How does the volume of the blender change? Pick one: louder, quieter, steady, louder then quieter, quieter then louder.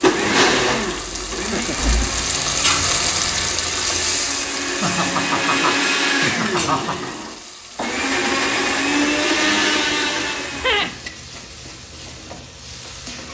quieter then louder.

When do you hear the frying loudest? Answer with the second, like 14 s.
3 s.